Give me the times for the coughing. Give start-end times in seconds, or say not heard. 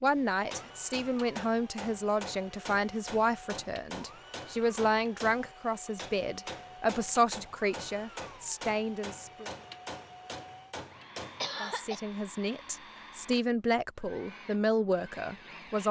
11.4-12.0.